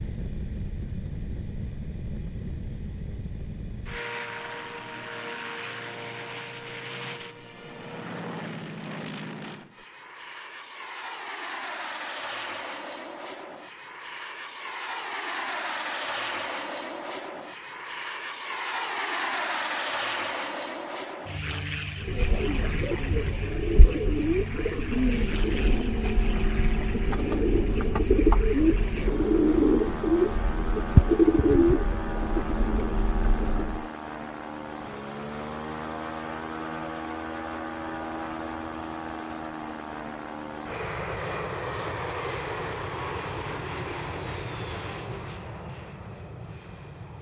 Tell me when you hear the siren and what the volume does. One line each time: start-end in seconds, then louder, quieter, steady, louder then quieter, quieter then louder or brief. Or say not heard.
not heard.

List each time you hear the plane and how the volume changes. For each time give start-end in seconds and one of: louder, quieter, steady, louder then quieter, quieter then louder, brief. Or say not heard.
0.0-47.1 steady.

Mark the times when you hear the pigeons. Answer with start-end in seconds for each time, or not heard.
22.0-33.9.